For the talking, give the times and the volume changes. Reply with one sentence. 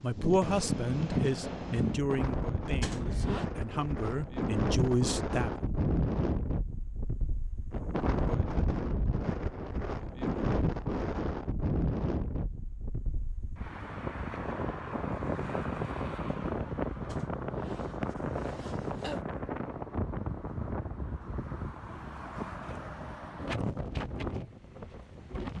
You can hear the talking from 0.0 to 5.5 s, getting quieter then louder.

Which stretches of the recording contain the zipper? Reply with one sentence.
You can hear the zipper from 2.8 to 3.5 s and from 17.1 to 19.2 s.